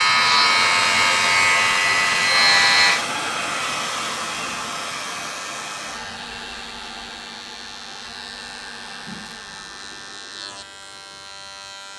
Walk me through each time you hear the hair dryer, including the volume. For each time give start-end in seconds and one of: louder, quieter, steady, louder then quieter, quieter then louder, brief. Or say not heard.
0.0-10.2 quieter.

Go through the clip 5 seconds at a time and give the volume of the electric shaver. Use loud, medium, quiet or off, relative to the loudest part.
loud, quiet, quiet.